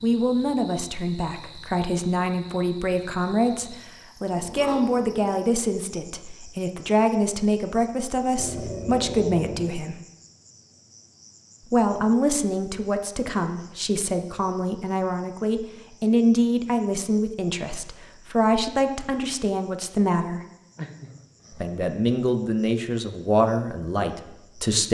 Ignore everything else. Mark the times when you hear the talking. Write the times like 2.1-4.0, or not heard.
0.0-9.9, 11.7-20.4, 21.5-24.8.